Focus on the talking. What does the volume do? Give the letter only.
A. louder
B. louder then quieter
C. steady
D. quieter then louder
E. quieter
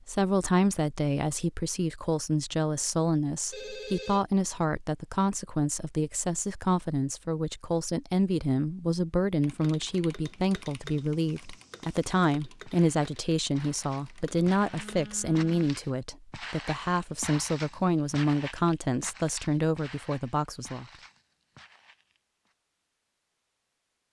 C.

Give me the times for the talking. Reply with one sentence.
The talking can be heard from 0.1 to 20.9 s.